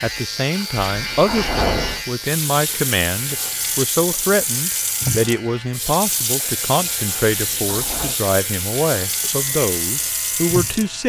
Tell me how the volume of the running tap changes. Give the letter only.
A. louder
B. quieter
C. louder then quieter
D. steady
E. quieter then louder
A.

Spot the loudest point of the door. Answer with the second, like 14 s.
2 s.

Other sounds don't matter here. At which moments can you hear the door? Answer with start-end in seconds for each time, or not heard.
0.8-2.0, 7.3-8.2.